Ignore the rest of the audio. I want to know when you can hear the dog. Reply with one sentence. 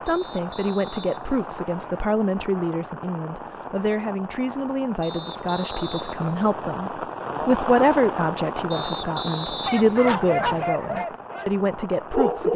You can hear the dog from 9.6 to 11.5 s and from 12.1 to 12.5 s.